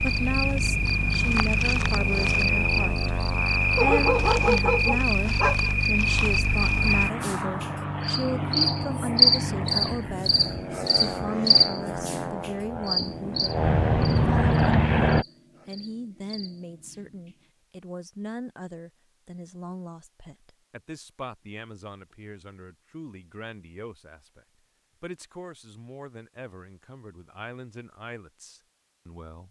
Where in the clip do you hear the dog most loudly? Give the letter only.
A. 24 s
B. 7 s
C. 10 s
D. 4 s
D.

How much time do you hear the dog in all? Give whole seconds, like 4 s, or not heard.
2 s.